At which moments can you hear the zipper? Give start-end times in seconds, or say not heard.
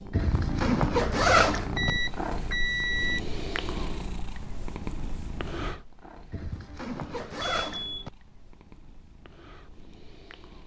0.1-1.9, 6.3-8.1.